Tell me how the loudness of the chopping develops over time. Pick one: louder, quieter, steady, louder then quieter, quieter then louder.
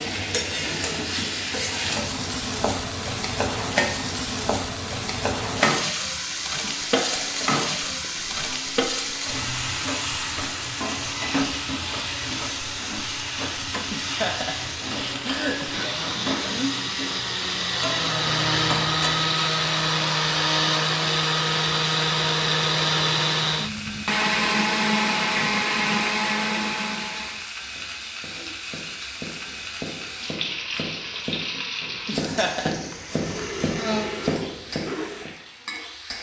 louder.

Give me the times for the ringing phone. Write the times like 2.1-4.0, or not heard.
not heard.